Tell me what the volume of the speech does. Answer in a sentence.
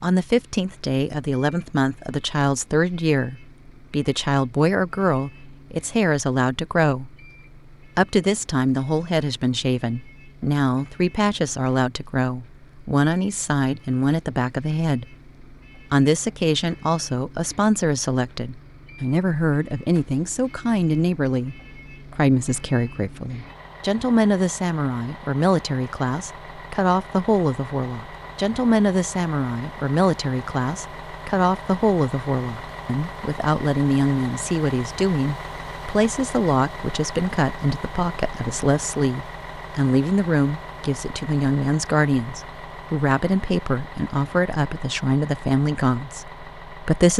The loudness of the speech stays about the same.